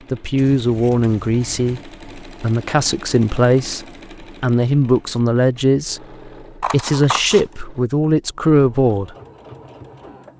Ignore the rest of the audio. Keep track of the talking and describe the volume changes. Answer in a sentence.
The loudness of the talking stays about the same.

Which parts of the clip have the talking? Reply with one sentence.
The talking can be heard from 0.1 to 9.2 s.